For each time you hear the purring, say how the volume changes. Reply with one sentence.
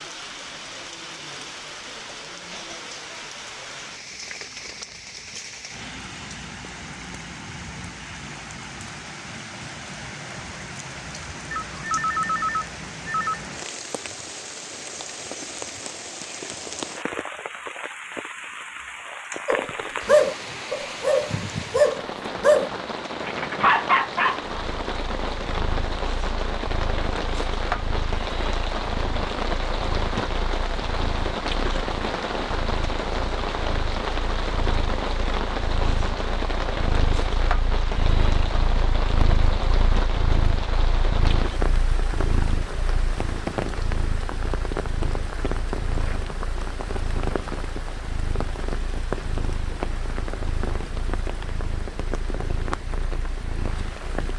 You can hear the purring from 24.4 to 54.1 s, getting louder then quieter.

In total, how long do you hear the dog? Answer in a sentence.
The dog can be heard for 5 seconds in total.